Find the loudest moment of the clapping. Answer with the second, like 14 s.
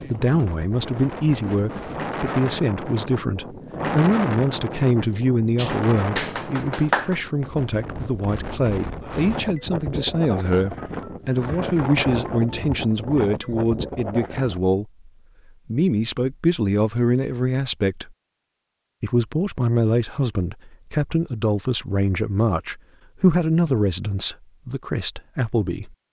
7 s.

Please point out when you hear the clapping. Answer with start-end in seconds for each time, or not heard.
5.5-7.2.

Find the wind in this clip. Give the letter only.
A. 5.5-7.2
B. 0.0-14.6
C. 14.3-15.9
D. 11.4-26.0
B.